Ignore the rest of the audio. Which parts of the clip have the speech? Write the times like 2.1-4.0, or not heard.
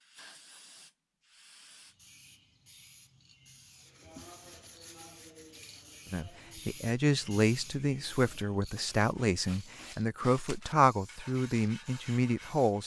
6.1-12.8.